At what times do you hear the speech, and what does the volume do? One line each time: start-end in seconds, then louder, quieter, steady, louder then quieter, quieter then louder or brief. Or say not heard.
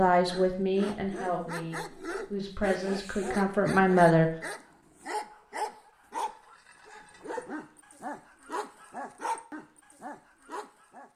0.0-4.3 quieter then louder.